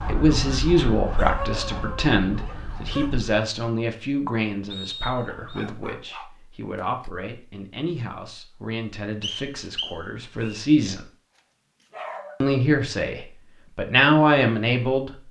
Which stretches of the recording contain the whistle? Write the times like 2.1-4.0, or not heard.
4.7-5.7, 9.2-10.6.